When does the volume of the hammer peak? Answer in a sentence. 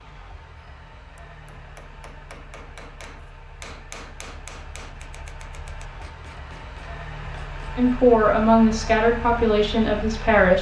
The volume of the hammer peaks at 4 seconds.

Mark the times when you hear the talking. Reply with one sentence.
The talking can be heard from 7.8 to 10.5 s.